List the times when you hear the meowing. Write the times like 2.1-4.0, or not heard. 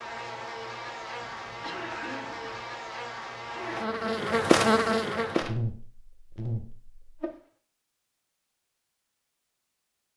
not heard.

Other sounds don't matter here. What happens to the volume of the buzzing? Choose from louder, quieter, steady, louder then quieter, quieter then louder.
louder then quieter.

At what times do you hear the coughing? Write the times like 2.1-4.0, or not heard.
1.2-2.6.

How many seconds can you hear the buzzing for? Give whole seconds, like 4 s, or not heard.
7 s.